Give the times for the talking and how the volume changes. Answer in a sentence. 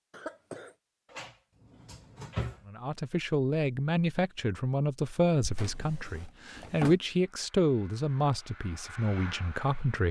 The talking can be heard from 2.6 to 10.0 s, getting quieter.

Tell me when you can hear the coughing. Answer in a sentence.
You can hear the coughing from 0.1 to 0.8 s and from 5.4 to 6.3 s.